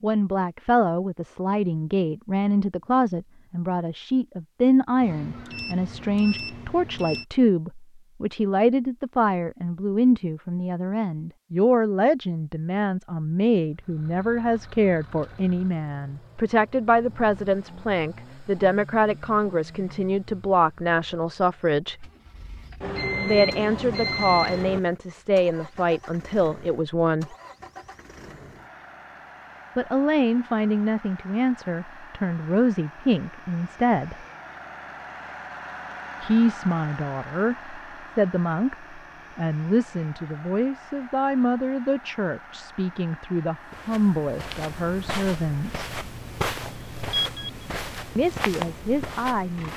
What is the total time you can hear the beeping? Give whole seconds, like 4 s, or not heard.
5 s.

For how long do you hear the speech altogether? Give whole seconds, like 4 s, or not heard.
42 s.